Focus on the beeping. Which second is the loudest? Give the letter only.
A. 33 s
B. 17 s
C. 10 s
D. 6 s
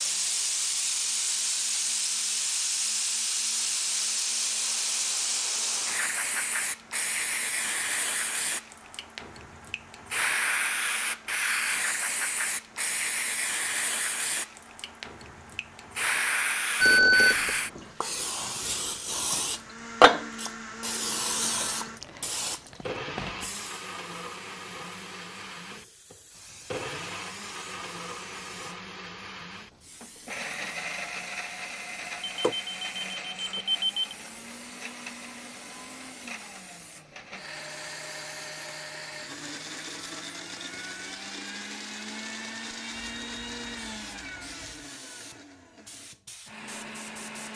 B.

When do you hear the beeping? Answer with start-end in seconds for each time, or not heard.
16.8-17.6, 32.2-34.1.